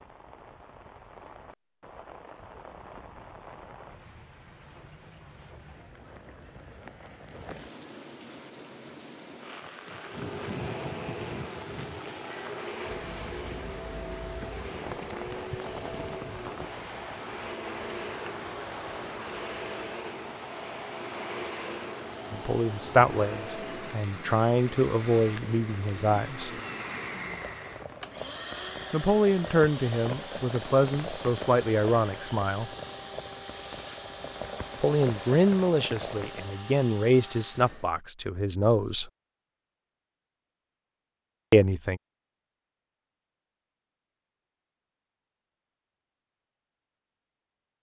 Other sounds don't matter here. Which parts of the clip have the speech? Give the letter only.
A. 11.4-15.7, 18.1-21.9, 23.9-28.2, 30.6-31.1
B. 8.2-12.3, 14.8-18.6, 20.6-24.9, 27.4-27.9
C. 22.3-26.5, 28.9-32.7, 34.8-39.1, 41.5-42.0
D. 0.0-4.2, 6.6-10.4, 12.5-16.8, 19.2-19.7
C.